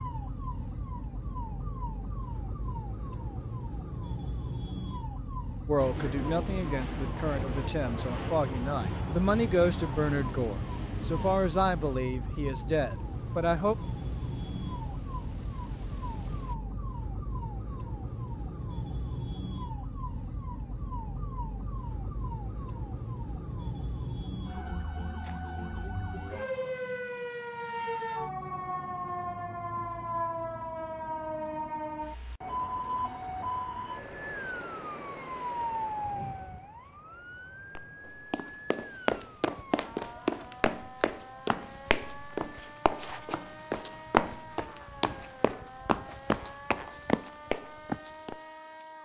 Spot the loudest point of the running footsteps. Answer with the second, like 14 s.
44 s.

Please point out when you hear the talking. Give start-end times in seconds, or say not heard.
5.7-13.8.